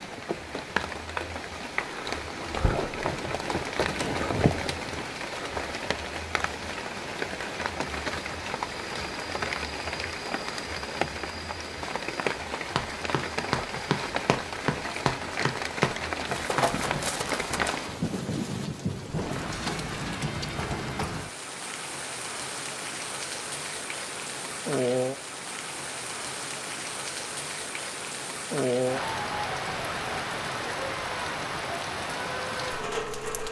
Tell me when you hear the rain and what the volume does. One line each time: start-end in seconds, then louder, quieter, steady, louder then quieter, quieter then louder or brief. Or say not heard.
0.0-33.4 steady.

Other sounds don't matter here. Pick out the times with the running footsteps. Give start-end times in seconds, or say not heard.
12.8-17.9.